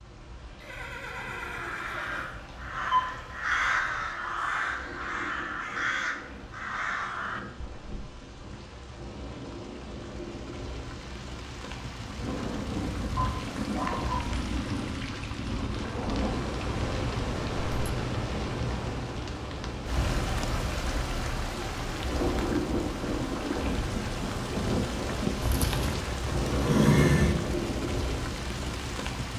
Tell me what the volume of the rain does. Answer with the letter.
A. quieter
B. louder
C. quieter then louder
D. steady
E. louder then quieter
B.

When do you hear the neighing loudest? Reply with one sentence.
The volume of the neighing peaks at 27 seconds.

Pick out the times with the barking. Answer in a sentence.
You can hear the barking from 13.2 to 14.4 s.